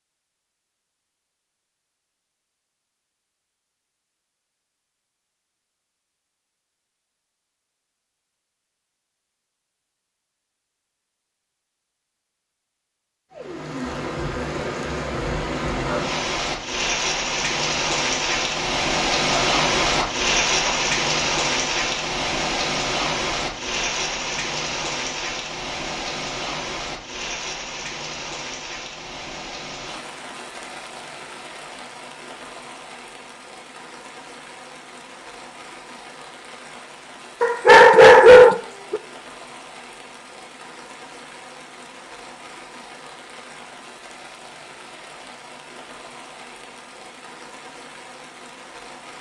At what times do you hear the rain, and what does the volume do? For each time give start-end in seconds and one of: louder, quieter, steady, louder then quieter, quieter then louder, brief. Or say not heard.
13.3-49.1 quieter.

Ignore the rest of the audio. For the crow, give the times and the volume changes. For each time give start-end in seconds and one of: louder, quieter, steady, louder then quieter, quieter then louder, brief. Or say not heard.
not heard.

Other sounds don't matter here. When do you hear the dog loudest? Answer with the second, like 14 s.
38 s.